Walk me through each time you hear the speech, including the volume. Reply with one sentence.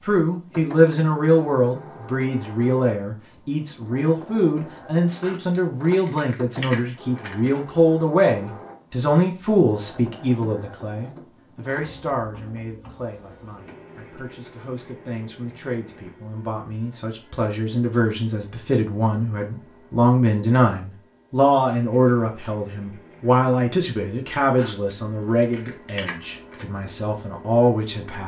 The speech can be heard from 0.0 to 28.2 s, getting quieter then louder.